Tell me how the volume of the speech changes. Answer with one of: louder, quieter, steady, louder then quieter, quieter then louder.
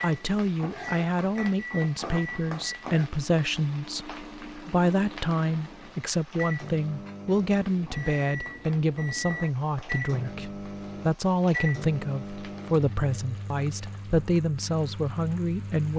steady.